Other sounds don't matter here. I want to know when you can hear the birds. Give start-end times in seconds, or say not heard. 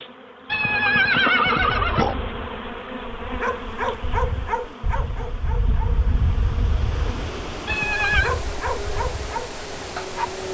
not heard.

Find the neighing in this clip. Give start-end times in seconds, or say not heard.
0.5-2.1, 7.7-8.3.